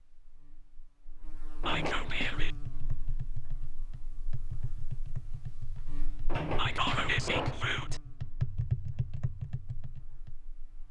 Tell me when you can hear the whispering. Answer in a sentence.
You can hear the whispering from 1.6 to 2.5 s and from 6.5 to 8.0 s.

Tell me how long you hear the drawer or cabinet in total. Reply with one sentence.
The drawer or cabinet can be heard for 2 seconds in total.